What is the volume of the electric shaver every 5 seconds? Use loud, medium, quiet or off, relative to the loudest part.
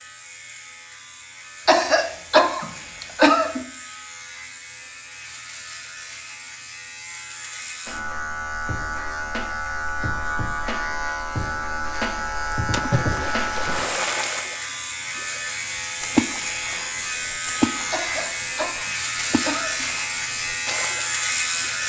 quiet, medium, loud, loud, loud.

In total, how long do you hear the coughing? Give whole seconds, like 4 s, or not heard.
4 s.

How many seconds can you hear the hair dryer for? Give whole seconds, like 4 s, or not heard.
not heard.